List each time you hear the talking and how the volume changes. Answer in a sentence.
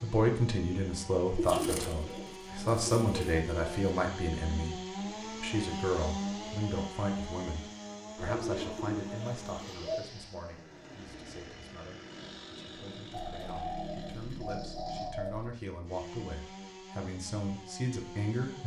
The talking can be heard from 0.0 to 18.6 s, getting quieter then louder.